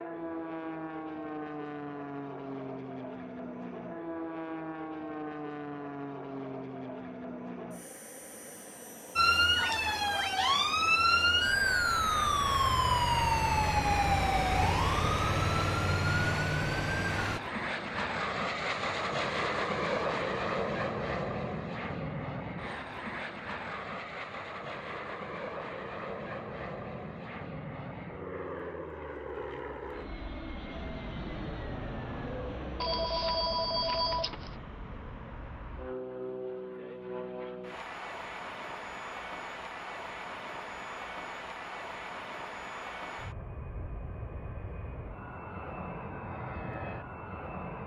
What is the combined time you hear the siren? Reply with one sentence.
You can hear the siren for 8 seconds altogether.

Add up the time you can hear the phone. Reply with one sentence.
You can hear the phone for 2 seconds altogether.